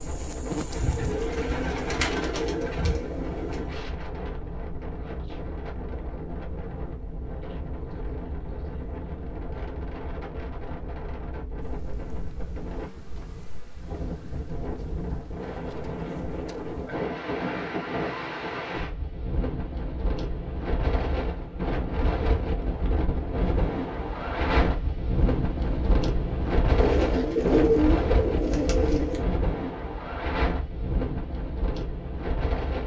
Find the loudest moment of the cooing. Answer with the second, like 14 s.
28 s.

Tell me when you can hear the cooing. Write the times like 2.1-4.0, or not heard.
0.7-3.8, 26.8-29.2.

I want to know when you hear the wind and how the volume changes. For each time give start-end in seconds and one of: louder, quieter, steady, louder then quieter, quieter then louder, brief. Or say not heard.
0.0-32.8 louder.